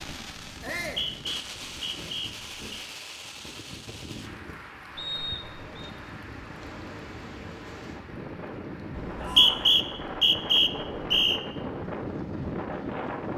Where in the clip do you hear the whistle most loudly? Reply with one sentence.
The loudest moment of the whistle is at 10 seconds.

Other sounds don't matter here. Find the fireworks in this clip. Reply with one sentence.
You can hear the fireworks from 0.0 to 4.3 s.